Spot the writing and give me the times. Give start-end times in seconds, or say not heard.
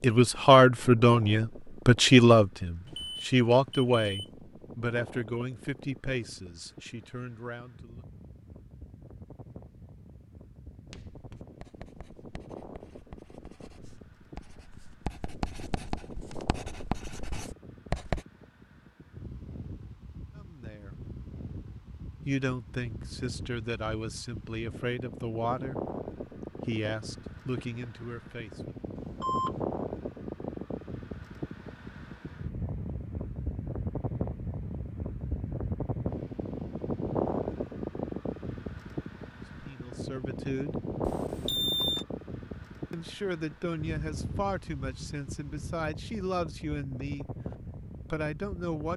10.8-18.2.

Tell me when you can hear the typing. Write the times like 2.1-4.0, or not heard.
not heard.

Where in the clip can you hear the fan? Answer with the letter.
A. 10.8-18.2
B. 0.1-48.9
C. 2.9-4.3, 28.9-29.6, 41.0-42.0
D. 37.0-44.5
B.